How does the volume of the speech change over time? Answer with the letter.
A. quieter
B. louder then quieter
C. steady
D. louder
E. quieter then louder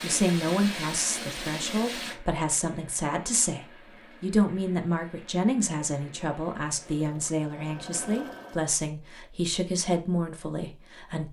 C.